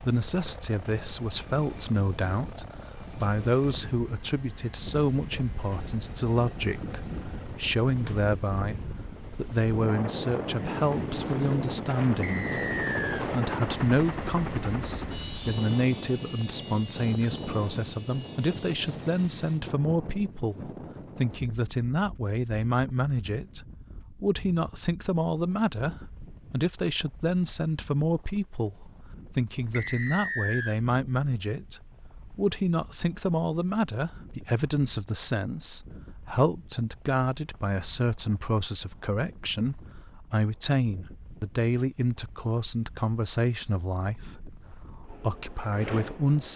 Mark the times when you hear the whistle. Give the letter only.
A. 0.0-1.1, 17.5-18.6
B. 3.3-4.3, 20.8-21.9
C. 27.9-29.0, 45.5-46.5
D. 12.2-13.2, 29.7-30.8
D.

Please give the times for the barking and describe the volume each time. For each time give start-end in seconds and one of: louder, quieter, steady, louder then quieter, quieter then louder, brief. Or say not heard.
not heard.